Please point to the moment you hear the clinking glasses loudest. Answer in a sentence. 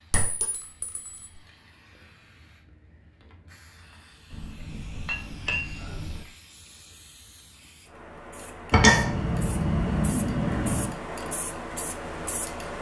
The loudest moment of the clinking glasses is at 9 seconds.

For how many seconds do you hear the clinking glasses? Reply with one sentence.
The clinking glasses can be heard for 5 seconds in total.